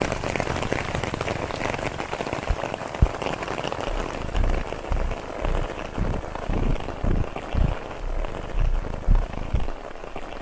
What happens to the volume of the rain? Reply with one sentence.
The loudness of the rain goes down.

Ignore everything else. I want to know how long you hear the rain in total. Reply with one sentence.
You can hear the rain for 10 seconds altogether.